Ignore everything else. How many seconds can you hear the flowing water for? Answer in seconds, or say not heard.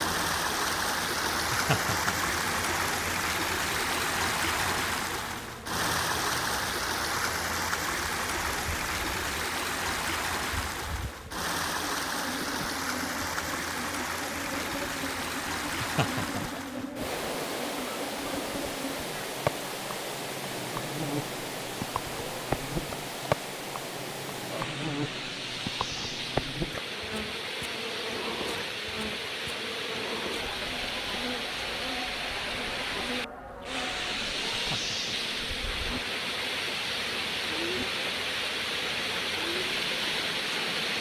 41 s.